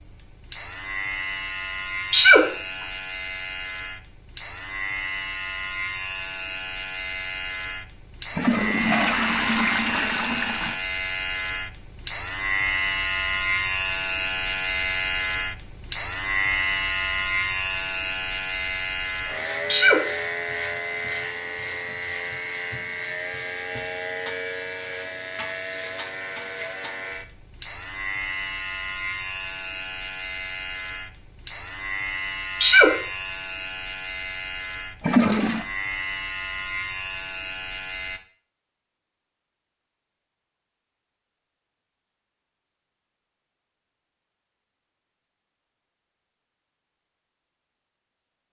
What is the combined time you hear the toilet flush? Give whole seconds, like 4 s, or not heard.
3 s.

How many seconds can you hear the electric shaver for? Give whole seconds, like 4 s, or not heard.
38 s.